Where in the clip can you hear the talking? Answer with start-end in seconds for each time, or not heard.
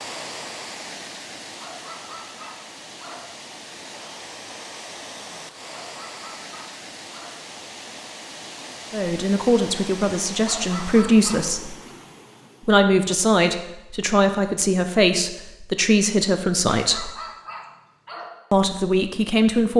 8.9-11.8, 12.7-17.1, 18.5-19.7.